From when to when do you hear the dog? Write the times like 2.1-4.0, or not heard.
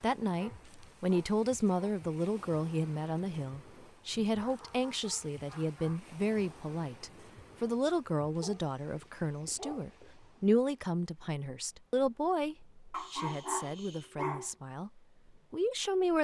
0.2-2.0, 4.1-6.1, 8.4-10.2, 12.9-14.5.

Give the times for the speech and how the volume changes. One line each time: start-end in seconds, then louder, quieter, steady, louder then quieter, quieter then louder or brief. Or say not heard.
0.0-16.1 quieter.